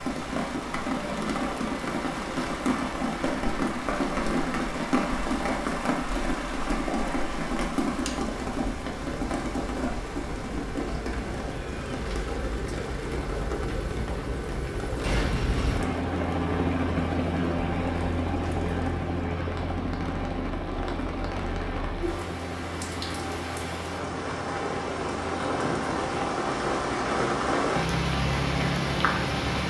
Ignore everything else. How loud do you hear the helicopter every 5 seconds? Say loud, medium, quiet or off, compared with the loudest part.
medium, medium, medium, loud, medium, medium.